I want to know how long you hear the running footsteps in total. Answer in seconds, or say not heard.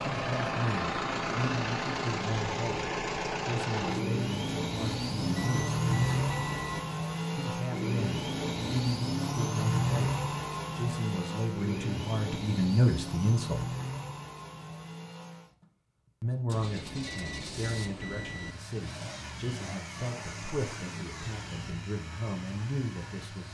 not heard.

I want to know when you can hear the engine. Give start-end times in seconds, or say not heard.
0.0-23.4.